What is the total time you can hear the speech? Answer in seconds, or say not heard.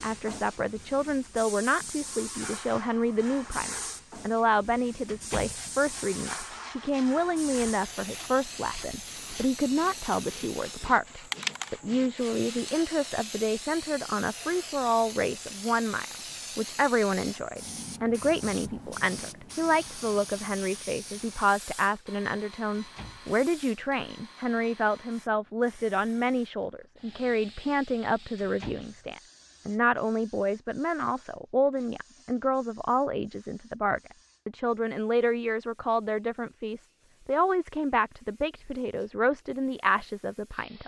41 s.